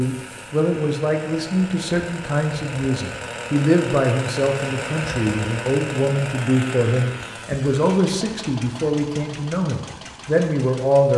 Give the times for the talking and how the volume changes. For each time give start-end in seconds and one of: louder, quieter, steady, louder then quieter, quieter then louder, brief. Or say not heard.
0.0-11.1 steady.